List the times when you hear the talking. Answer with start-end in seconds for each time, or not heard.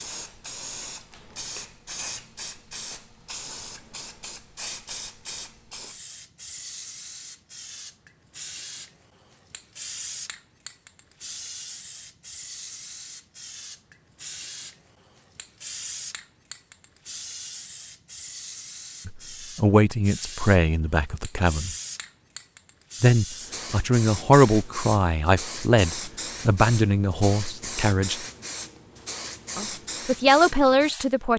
19.1-21.7, 23.0-28.2, 29.6-31.3.